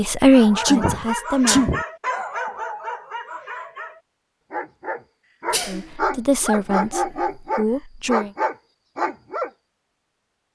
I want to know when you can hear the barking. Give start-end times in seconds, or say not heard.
0.3-9.5.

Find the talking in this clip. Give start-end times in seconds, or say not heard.
0.0-1.7, 5.7-8.3.